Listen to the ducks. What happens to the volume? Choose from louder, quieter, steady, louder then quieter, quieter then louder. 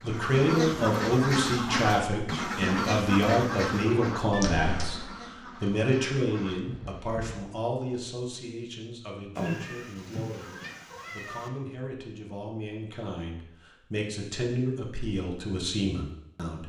quieter.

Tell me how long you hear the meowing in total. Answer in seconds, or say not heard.
3 s.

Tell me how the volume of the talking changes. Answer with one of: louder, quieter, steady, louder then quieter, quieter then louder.
quieter then louder.